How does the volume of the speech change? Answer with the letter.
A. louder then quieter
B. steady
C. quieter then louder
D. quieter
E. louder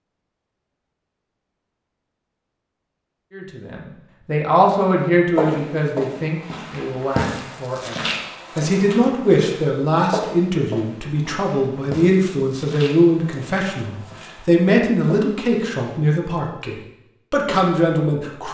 B.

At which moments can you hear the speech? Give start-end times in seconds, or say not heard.
3.3-18.4.